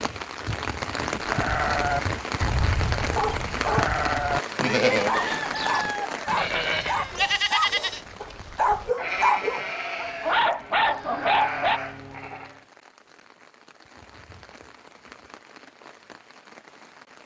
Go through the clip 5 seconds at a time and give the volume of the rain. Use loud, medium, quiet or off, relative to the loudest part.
loud, medium, quiet, quiet.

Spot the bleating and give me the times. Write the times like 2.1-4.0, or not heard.
1.1-12.6.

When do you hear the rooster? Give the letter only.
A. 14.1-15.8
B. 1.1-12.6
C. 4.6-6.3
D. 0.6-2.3
C.